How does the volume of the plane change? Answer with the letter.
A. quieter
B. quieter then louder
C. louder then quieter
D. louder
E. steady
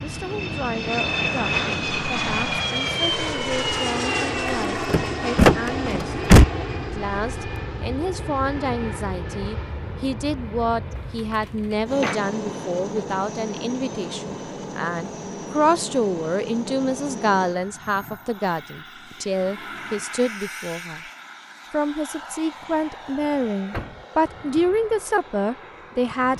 A.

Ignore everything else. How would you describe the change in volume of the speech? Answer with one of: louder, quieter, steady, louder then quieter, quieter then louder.
louder.